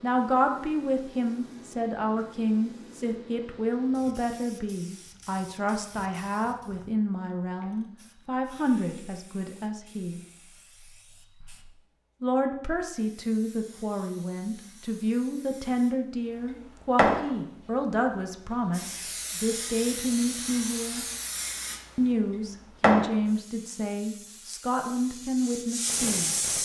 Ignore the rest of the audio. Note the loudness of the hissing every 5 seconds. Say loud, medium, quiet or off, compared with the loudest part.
quiet, quiet, quiet, loud, loud, loud.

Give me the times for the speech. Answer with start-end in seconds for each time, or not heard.
0.0-10.2, 12.2-21.1, 21.9-26.4.